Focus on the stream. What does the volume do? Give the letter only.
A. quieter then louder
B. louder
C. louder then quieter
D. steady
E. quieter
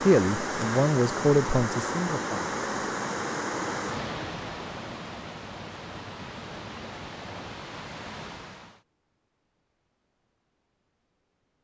E.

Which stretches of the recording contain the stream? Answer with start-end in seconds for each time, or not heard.
0.0-8.8.